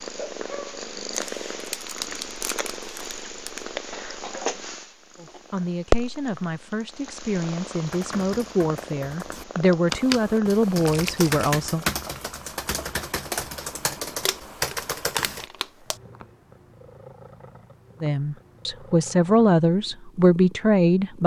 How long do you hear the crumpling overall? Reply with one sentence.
You can hear the crumpling for 5 seconds altogether.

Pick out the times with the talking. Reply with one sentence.
The talking can be heard from 5.2 to 11.8 s and from 18.0 to 21.2 s.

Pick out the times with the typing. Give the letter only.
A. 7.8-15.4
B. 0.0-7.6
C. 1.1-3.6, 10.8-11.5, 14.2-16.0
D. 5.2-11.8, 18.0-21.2
A.